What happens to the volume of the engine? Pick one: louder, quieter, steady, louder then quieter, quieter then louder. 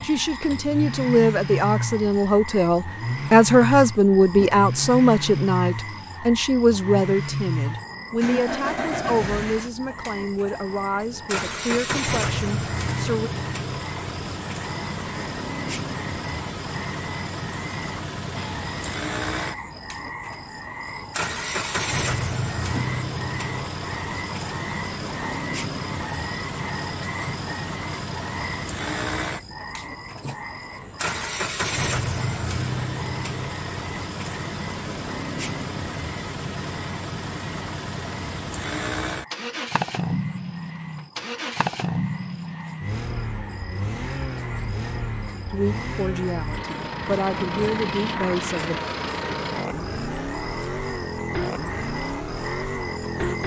steady.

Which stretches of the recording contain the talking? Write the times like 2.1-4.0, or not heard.
0.0-13.3, 45.5-48.8.